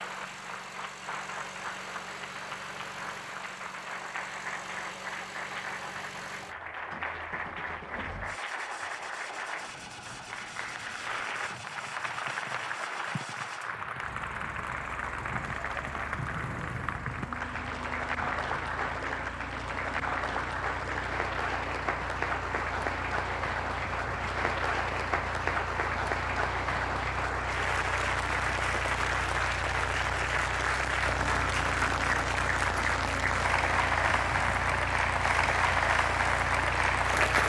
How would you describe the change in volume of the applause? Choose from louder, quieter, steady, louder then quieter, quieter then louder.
louder.